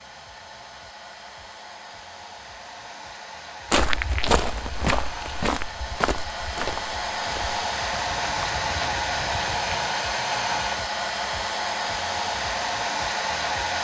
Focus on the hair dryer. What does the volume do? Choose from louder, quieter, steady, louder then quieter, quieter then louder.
louder.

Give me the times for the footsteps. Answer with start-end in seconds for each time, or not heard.
3.7-9.8.